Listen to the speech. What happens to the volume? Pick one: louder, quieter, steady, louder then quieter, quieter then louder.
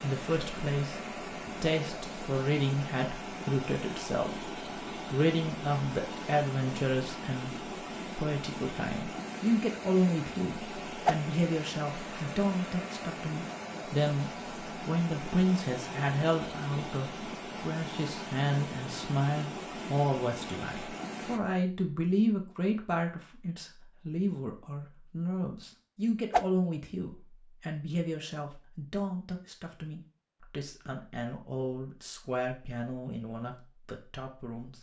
quieter.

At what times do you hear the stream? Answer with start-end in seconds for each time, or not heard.
0.0-21.4.